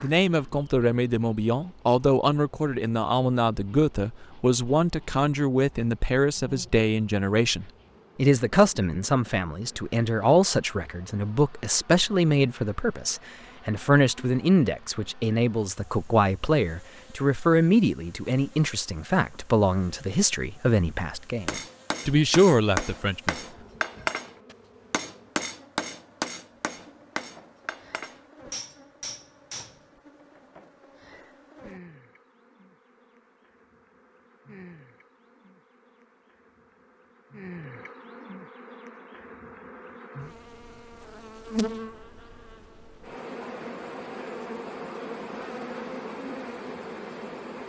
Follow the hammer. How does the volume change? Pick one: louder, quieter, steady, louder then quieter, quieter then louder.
quieter.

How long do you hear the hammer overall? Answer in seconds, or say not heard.
8 s.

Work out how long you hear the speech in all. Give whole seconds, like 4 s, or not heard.
23 s.